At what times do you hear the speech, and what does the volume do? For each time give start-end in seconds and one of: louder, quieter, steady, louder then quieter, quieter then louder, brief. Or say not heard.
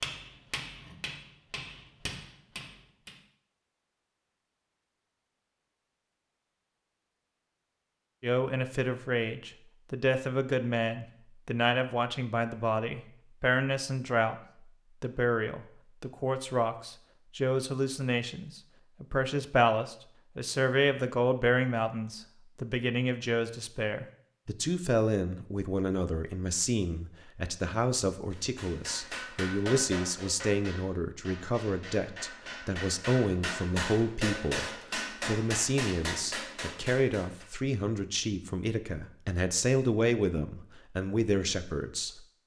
8.2-14.3 steady
15.0-42.2 steady.